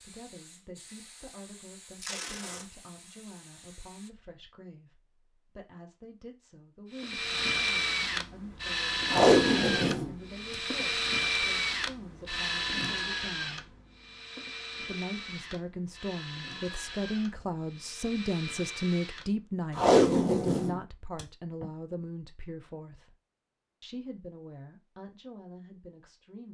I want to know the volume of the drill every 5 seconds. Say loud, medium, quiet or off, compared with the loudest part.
off, loud, loud, quiet, off, off.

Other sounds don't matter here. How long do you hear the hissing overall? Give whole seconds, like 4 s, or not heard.
4 s.